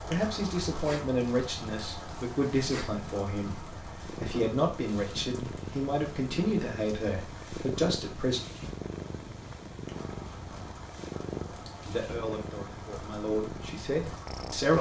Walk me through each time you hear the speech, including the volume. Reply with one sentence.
You can hear the speech from 0.1 to 8.4 s, at a steady volume; and briefly from 11.8 to 14.7 s.